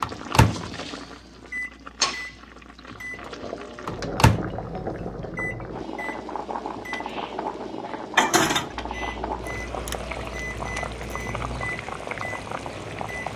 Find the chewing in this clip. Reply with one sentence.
The chewing can't be heard in this clip.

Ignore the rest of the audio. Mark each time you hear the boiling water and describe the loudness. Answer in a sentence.
You can hear the boiling water from 0.0 to 13.3 s, at a steady volume.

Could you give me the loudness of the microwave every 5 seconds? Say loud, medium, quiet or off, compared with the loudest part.
loud, loud, medium.